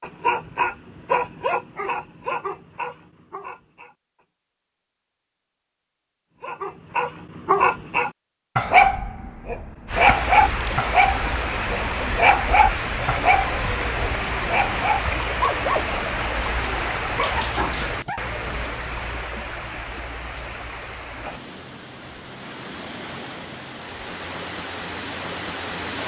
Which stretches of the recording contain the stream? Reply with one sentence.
You can hear the stream from 9.8 to 26.0 s.